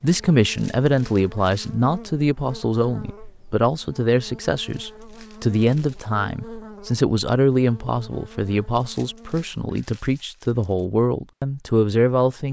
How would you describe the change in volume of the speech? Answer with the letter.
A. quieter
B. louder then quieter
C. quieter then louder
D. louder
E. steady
E.